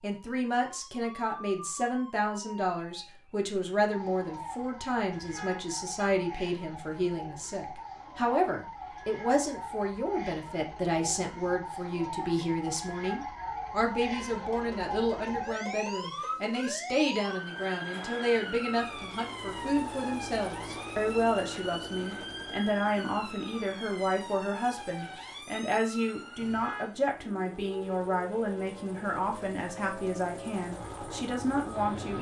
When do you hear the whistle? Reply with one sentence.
The whistle can't be heard in this clip.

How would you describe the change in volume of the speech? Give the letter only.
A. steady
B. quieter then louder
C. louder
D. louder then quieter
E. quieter
A.